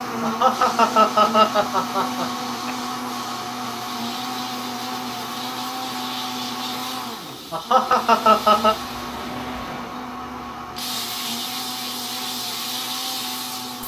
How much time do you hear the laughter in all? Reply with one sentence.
The laughter can be heard for 4 seconds in total.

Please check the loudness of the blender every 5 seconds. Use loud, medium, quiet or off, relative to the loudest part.
loud, loud, medium.